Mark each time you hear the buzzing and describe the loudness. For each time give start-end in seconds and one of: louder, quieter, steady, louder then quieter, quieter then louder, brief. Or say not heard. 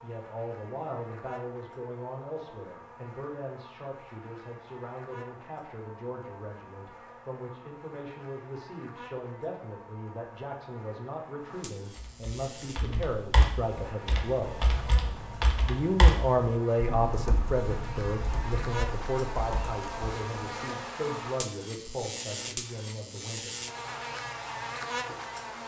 0.0-25.6 louder.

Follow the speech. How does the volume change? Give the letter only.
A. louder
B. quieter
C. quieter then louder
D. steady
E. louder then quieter
E.